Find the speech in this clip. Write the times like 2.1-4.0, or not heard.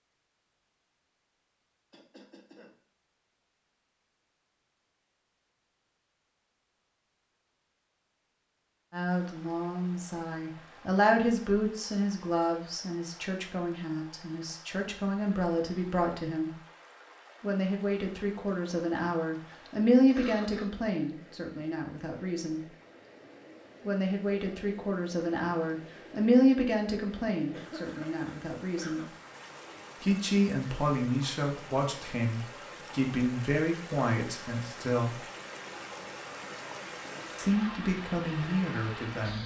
8.9-16.5, 17.4-22.6, 23.9-29.0, 30.0-35.2, 37.4-39.4.